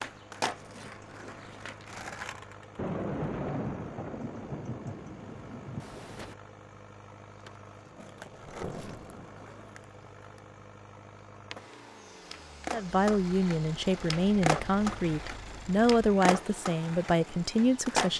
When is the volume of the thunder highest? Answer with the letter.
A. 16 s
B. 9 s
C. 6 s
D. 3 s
D.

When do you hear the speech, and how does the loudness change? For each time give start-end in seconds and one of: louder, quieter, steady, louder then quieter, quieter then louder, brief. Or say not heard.
12.7-18.1 steady.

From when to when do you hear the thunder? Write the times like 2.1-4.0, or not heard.
2.8-6.3.